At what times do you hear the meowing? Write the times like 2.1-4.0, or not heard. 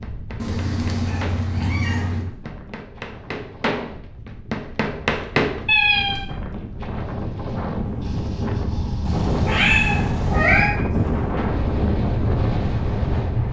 0.3-2.2, 5.7-6.2, 9.1-10.7.